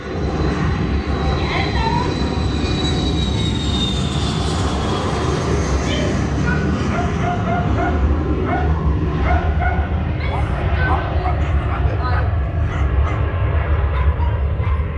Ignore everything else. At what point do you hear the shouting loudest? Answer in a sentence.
The volume of the shouting peaks at 2 seconds.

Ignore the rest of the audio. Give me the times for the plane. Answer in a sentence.
You can hear the plane from 0.0 to 14.9 s.